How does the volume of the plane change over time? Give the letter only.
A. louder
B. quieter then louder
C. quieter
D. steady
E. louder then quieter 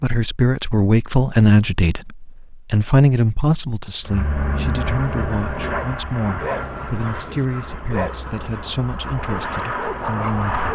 B.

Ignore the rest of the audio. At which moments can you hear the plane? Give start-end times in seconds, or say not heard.
4.0-10.7.